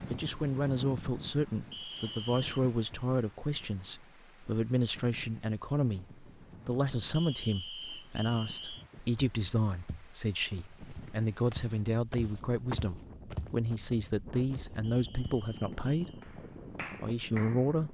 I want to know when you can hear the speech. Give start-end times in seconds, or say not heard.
0.0-16.2, 17.0-17.8.